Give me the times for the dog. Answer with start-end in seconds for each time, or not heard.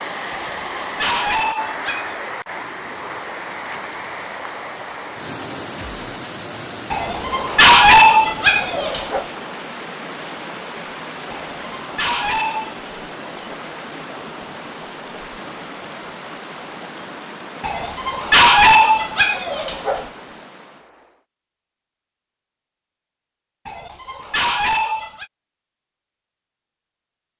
0.3-2.2, 6.9-9.2, 11.3-12.9, 17.6-20.1, 23.6-25.2.